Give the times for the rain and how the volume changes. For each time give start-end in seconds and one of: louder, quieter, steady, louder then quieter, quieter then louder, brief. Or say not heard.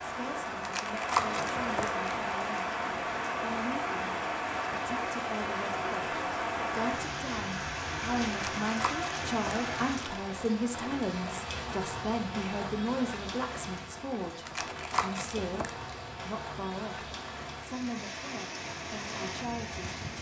0.0-20.1 quieter.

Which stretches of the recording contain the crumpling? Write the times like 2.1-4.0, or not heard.
0.5-2.1, 8.2-10.2, 14.3-15.9.